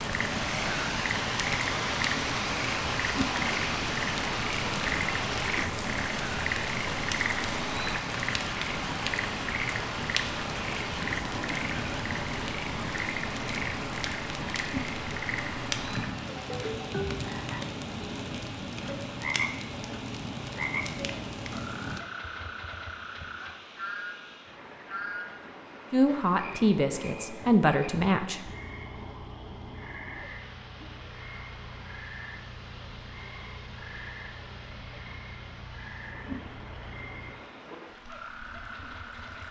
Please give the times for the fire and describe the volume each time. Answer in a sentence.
You can hear the fire from 0.0 to 22.0 s, at a steady volume.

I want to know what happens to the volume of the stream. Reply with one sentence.
The loudness of the stream goes down.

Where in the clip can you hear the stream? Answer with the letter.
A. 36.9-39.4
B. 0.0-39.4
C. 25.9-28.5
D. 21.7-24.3
B.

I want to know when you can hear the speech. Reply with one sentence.
You can hear the speech from 25.9 to 28.5 s.